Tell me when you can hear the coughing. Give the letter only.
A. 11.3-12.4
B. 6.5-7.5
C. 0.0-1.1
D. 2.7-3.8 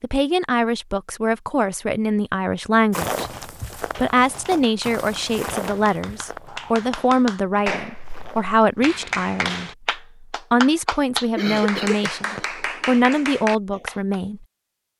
A.